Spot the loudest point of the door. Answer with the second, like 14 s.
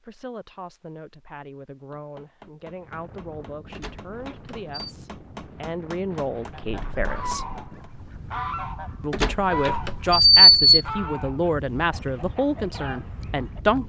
10 s.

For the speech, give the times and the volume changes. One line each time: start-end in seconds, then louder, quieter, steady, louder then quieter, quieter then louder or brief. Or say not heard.
0.0-7.5 louder
9.0-13.8 quieter.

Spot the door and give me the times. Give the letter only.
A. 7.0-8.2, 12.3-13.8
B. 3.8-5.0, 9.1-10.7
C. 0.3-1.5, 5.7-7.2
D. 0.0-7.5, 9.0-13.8
B.